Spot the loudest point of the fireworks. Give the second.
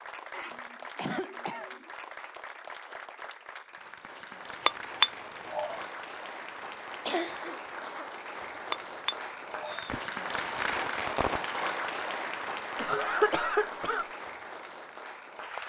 11 s.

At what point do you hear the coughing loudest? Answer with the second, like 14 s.
13 s.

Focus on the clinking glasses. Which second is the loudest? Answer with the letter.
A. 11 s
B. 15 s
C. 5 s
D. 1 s
C.